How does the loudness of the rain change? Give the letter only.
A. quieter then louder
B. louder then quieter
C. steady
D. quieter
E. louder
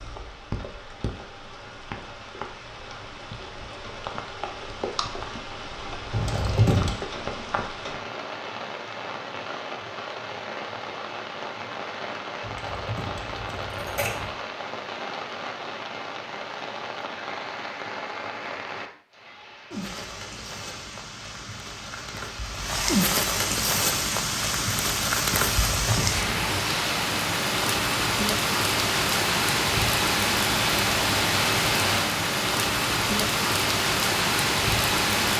E.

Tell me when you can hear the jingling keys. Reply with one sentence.
You can hear the jingling keys from 6.1 to 7.0 s, from 12.4 to 14.3 s and from 25.4 to 26.6 s.